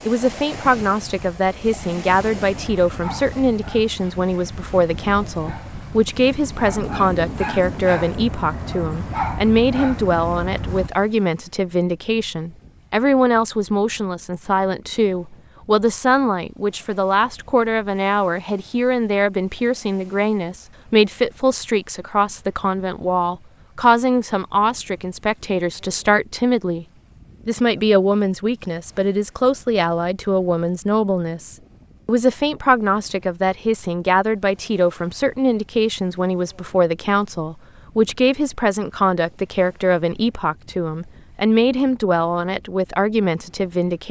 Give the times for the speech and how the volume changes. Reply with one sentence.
The speech can be heard from 0.1 to 26.9 s, at a steady volume; and from 27.4 to 44.0 s, at a steady volume.